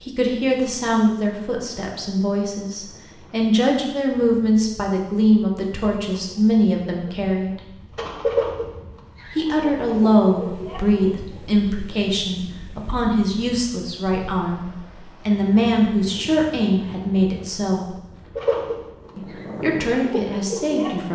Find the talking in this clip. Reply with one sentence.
You can hear the talking from 0.0 to 7.6 s, from 9.3 to 17.9 s and from 19.1 to 21.0 s.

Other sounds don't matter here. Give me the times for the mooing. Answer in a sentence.
You can't hear the mooing here.